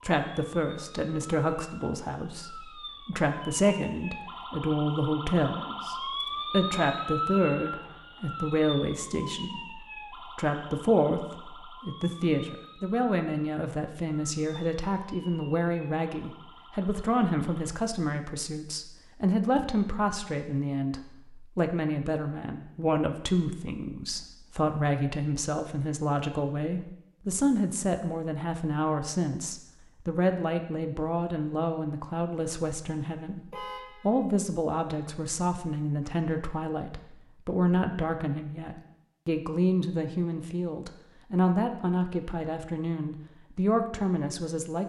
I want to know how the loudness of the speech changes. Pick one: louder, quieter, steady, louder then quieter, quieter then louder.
steady.